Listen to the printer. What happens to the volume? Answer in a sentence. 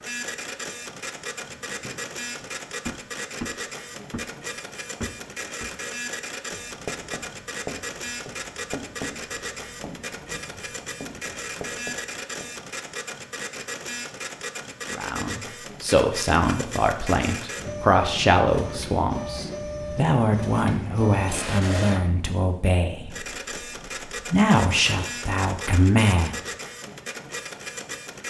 The loudness of the printer stays about the same.